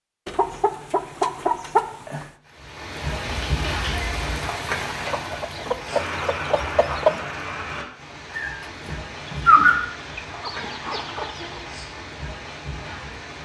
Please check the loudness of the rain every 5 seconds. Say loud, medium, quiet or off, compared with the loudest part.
loud, loud, medium.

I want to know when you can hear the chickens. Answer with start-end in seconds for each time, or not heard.
0.2-2.3, 5.0-7.2, 9.2-11.8.